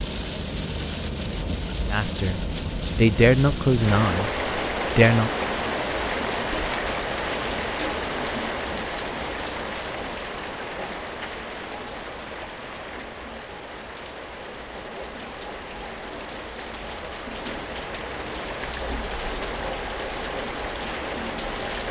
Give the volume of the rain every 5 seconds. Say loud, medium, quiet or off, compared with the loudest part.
loud, loud, medium, medium, loud.